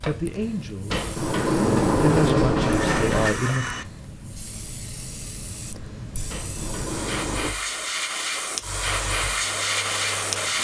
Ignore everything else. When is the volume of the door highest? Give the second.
2 s.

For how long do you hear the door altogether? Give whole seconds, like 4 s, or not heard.
4 s.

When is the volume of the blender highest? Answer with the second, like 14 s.
3 s.